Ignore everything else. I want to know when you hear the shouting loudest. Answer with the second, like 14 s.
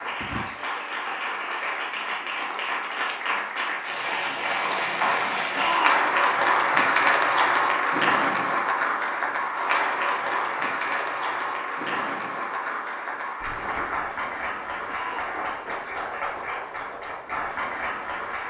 6 s.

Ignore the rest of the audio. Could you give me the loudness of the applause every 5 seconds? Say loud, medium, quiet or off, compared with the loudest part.
medium, loud, medium, medium.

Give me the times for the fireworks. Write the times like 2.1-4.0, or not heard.
not heard.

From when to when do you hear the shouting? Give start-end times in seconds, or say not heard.
5.5-6.2, 14.8-15.4.